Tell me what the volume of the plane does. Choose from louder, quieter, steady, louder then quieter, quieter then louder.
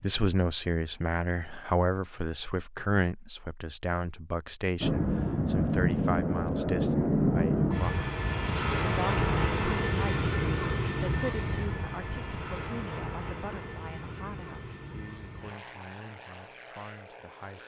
quieter.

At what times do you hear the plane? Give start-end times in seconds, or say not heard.
4.8-17.6.